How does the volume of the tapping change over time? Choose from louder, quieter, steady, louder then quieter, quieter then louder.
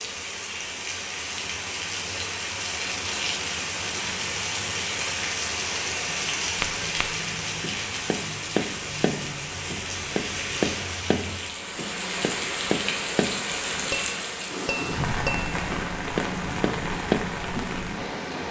steady.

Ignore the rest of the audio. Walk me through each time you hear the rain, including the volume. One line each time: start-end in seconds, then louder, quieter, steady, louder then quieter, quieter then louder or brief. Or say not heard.
0.0-18.4 steady.